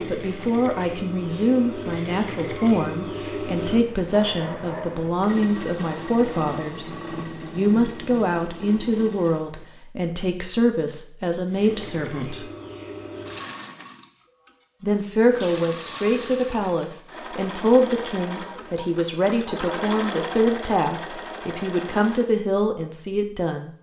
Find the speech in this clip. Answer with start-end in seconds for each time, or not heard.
0.1-6.9, 7.5-12.4, 14.8-23.7.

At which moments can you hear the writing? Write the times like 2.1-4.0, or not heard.
not heard.